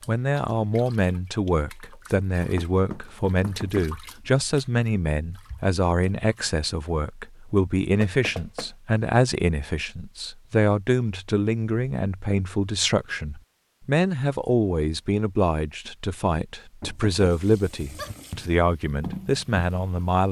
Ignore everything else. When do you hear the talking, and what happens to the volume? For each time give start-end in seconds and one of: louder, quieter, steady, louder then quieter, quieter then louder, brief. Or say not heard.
0.1-20.2 steady.